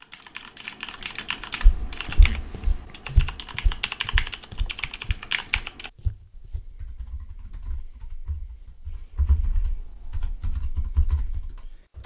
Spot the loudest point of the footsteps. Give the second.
3 s.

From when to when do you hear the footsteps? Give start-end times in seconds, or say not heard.
1.6-6.8.